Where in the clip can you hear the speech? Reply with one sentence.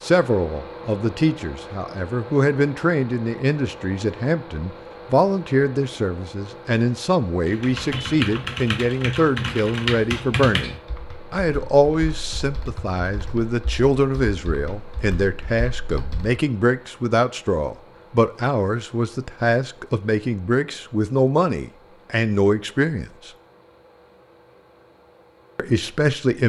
You can hear the speech from 0.0 to 23.3 s and from 25.6 to 26.4 s.